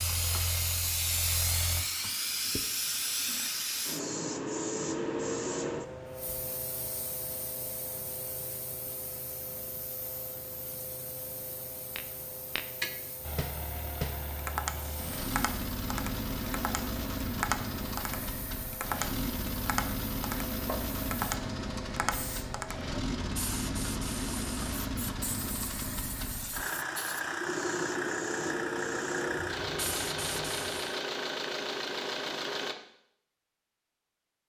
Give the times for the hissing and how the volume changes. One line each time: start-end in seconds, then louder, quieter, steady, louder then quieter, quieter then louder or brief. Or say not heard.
0.0-31.0 quieter then louder.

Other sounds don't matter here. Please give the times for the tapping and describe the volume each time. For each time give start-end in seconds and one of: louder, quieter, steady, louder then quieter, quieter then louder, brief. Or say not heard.
11.9-22.9 steady.